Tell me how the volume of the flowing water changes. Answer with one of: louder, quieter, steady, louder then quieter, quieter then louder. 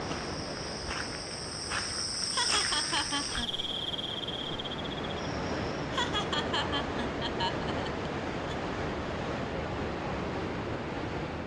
louder.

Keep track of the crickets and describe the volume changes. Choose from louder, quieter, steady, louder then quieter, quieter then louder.
louder then quieter.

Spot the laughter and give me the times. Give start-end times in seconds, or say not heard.
2.3-3.5, 5.9-8.6.